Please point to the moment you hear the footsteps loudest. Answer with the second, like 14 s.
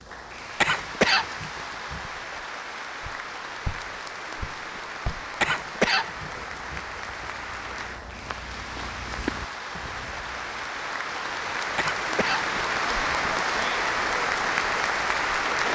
9 s.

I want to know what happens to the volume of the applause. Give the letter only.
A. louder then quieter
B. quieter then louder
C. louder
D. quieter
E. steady
C.